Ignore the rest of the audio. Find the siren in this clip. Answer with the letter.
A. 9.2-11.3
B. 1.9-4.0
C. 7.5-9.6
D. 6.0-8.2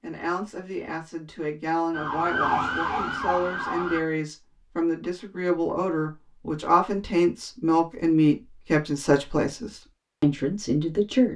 B.